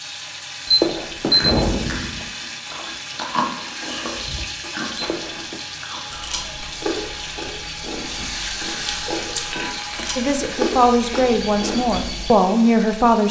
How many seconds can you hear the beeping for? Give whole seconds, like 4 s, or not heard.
3 s.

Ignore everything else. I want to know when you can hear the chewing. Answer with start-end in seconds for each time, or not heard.
1.3-12.3.